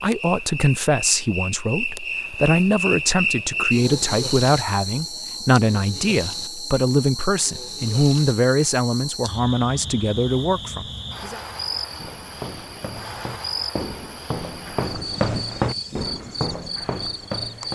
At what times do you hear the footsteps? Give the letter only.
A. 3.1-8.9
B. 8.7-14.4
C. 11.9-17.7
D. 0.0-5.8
C.